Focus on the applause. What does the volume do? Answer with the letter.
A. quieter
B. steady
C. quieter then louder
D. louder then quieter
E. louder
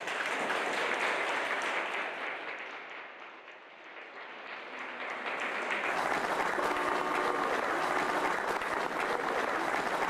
C.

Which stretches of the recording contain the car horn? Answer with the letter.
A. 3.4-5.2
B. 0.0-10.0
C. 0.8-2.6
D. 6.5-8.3
D.